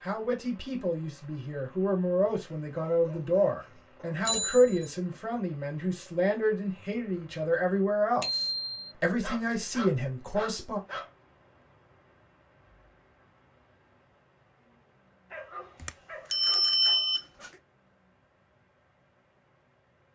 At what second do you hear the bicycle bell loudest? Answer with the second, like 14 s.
17 s.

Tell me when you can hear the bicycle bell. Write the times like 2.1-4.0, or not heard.
4.2-4.9, 8.2-8.8, 15.8-17.5.